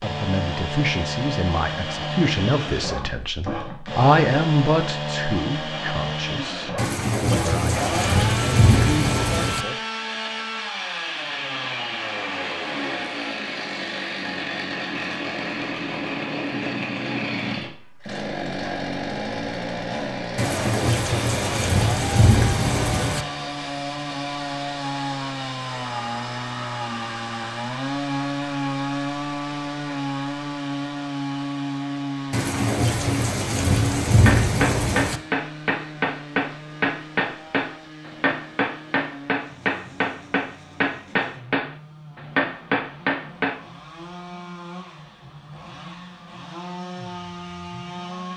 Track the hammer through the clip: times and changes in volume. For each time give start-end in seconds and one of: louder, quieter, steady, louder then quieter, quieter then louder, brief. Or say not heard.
34.1-43.6 steady.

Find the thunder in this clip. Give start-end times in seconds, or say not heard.
6.8-9.7, 20.4-23.2, 32.3-35.2.